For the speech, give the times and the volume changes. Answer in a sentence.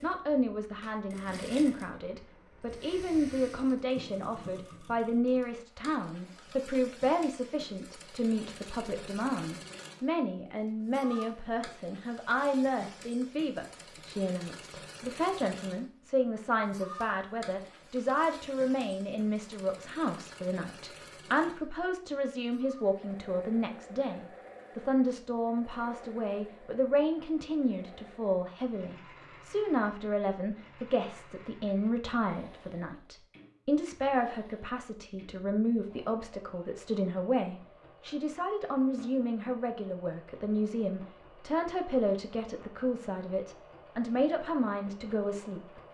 The speech can be heard from 0.0 to 45.8 s, at a steady volume.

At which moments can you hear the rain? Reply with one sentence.
The rain can't be heard in this clip.